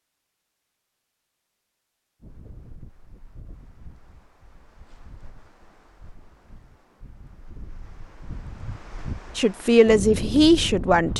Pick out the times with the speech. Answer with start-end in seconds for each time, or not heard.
9.3-11.1.